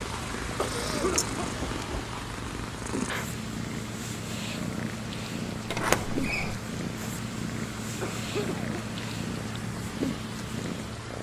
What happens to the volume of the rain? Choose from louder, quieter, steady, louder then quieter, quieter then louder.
steady.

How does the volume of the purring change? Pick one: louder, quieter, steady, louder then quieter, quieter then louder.
steady.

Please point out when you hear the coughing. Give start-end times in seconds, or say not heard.
0.6-1.3, 8.0-8.8.